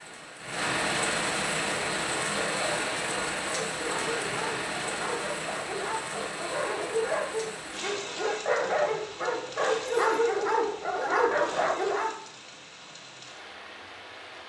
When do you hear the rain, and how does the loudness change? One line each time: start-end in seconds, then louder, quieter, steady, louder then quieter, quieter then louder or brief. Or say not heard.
0.0-14.4 quieter.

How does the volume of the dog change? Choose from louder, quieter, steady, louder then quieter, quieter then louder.
louder.